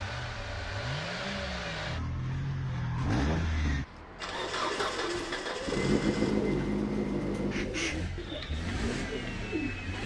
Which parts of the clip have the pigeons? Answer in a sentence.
The pigeons can be heard from 4.3 to 10.0 s.